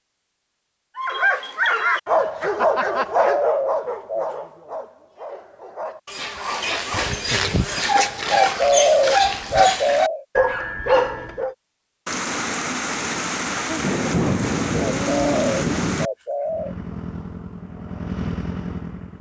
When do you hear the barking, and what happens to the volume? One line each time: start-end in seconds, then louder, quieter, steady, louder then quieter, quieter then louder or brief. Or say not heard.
0.9-11.6 quieter then louder.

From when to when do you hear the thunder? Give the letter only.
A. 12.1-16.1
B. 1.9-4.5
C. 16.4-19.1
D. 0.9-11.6
A.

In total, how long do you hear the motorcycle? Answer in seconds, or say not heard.
3 s.